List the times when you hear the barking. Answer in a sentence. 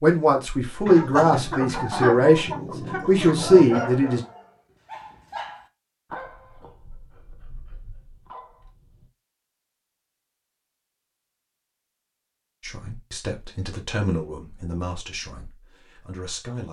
The barking can be heard from 3.9 to 9.1 s.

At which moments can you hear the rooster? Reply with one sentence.
The rooster can be heard from 0.8 to 4.0 s.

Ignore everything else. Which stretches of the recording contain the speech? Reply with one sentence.
You can hear the speech from 0.0 to 4.2 s and from 12.6 to 16.6 s.